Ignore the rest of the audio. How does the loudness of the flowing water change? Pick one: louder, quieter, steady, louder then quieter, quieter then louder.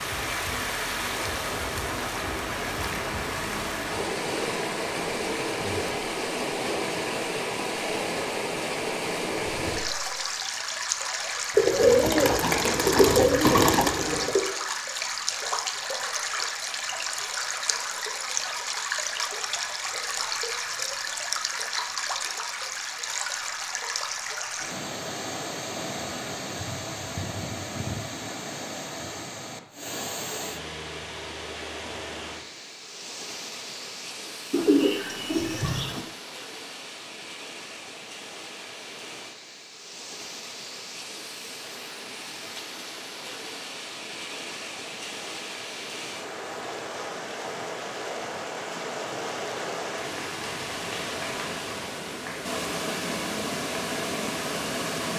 quieter then louder.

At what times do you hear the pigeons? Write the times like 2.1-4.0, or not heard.
11.6-14.4, 34.5-36.0.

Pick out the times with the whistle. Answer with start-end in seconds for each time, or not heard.
not heard.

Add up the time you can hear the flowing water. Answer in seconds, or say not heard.
55 s.